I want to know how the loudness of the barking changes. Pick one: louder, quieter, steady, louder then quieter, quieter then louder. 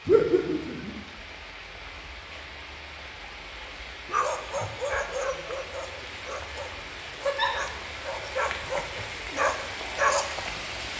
quieter then louder.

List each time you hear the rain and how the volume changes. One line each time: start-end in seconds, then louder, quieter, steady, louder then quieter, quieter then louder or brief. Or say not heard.
0.0-10.9 louder.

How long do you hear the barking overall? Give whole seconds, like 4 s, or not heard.
7 s.